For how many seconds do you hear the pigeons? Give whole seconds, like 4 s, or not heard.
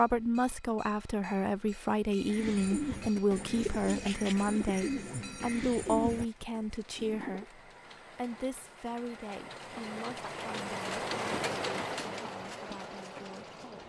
5 s.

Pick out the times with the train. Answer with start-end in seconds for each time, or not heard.
0.0-13.8.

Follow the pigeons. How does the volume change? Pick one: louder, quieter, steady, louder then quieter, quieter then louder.
quieter.